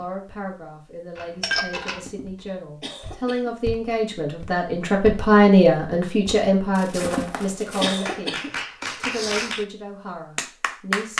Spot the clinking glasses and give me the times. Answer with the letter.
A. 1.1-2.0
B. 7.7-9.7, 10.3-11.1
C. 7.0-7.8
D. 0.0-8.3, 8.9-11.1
A.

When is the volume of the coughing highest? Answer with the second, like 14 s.
8 s.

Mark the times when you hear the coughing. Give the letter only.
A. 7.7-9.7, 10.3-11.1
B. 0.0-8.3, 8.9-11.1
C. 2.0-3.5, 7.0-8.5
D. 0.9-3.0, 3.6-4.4
C.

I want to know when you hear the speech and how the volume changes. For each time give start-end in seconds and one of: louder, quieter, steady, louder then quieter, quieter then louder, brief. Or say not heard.
0.0-8.3 louder then quieter
8.9-11.1 brief.